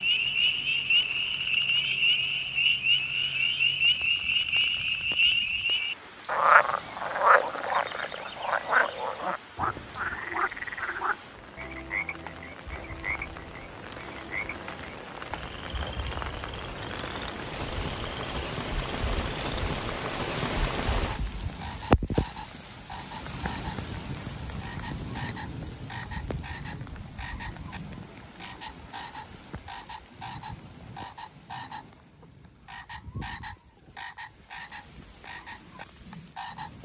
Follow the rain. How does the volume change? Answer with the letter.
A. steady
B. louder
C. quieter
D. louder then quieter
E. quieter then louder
D.